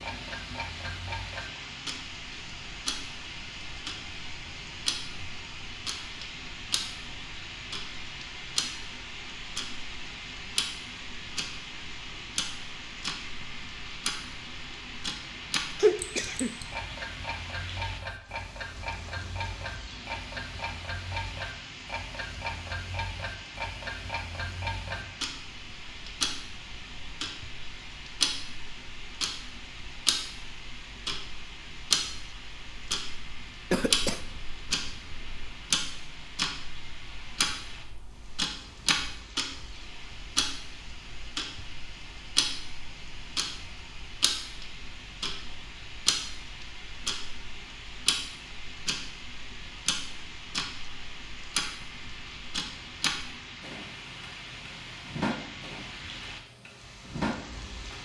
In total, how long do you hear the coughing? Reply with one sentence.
You can hear the coughing for 3 seconds altogether.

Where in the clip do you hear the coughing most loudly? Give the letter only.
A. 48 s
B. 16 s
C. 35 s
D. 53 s
B.